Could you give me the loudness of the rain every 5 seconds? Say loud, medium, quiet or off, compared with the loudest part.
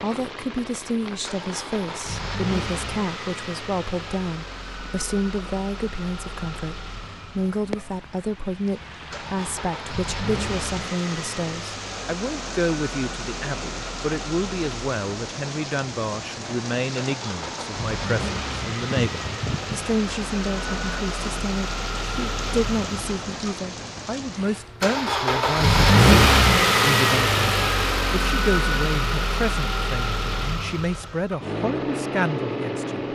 medium, medium, loud, loud, loud, off, off.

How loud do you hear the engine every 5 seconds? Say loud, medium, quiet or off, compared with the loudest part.
quiet, quiet, quiet, quiet, quiet, loud, medium.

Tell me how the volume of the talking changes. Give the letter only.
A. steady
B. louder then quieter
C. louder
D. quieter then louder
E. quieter
A.